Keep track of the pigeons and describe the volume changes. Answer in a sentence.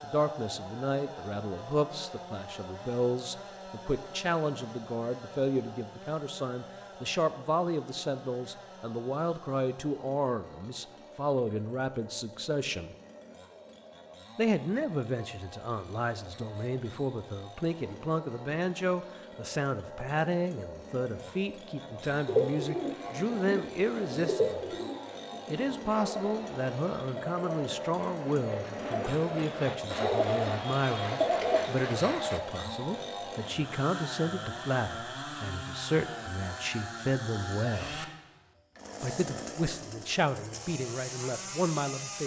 The volume of the pigeons goes down, then up.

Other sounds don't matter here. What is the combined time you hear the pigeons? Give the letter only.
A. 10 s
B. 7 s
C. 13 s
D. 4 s
A.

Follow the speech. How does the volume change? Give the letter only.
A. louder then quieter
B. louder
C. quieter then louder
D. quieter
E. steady
E.